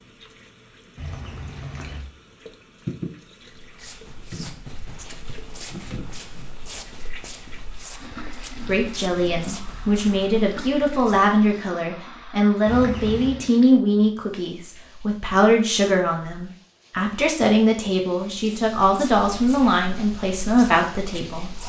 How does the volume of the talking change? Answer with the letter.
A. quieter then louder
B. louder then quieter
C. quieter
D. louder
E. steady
E.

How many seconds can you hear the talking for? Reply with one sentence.
The talking can be heard for 13 seconds in total.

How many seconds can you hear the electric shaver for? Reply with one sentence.
You can't hear the electric shaver here.